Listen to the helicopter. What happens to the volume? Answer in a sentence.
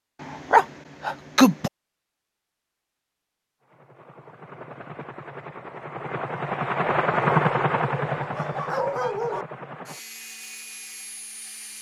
The loudness of the helicopter goes up, then down.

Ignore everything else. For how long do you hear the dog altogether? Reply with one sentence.
The dog can be heard for 3 seconds in total.